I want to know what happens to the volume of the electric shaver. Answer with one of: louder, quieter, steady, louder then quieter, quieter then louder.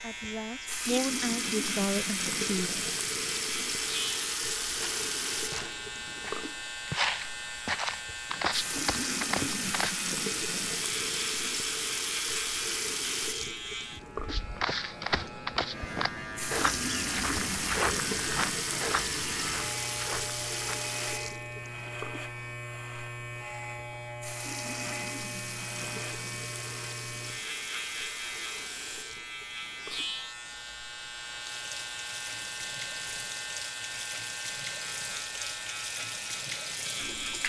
steady.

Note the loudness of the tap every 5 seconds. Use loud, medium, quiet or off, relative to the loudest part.
loud, loud, loud, loud, medium, medium, medium, medium.